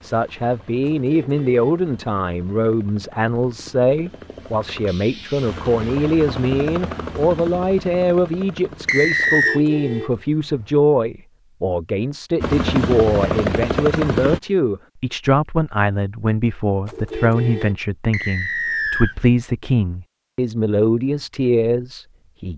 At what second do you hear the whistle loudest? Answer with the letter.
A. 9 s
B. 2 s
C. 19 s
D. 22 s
A.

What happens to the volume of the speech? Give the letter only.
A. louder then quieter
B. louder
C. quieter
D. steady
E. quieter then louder
D.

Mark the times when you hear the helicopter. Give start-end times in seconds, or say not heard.
0.0-9.5, 12.4-14.4.